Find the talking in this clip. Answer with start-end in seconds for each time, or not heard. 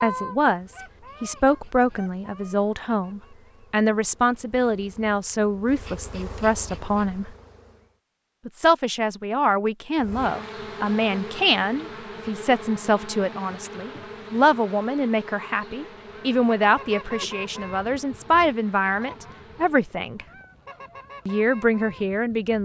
0.0-7.3, 8.4-20.2, 21.2-22.6.